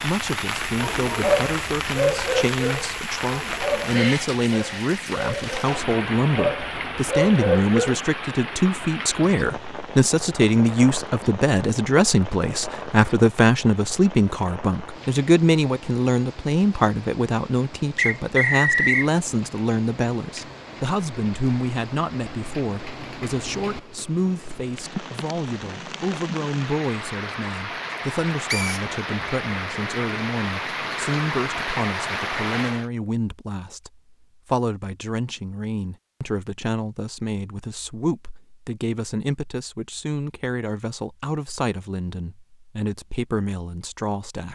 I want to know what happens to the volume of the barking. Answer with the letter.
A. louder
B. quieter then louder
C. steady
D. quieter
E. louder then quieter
B.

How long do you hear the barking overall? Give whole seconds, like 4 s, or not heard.
7 s.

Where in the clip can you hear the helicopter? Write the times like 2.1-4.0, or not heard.
not heard.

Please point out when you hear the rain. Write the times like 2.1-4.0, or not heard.
0.0-32.9.